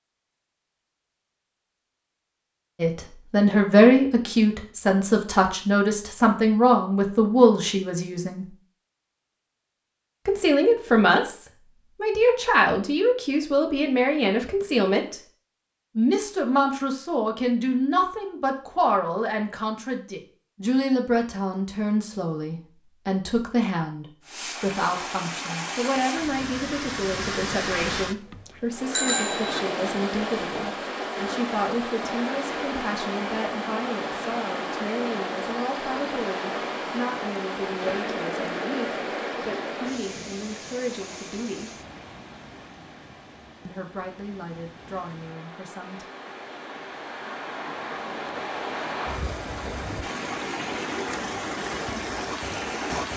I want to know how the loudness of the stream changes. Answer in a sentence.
The volume of the stream goes down, then up.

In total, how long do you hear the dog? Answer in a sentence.
You can't hear the dog here.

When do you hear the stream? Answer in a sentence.
The stream can be heard from 24.2 to 53.1 s.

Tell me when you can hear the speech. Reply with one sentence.
You can hear the speech from 2.8 to 8.5 s, from 10.2 to 15.2 s, from 15.9 to 41.8 s and from 43.6 to 46.0 s.